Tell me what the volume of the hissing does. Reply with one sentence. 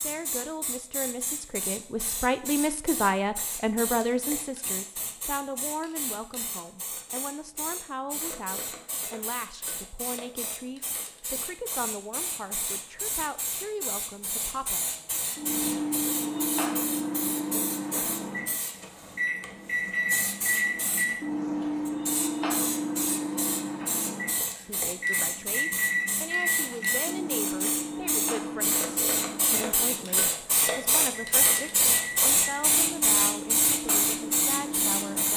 The loudness of the hissing goes up.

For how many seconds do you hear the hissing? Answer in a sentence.
You can hear the hissing for 35 seconds altogether.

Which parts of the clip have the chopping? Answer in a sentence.
The chopping can't be heard in this clip.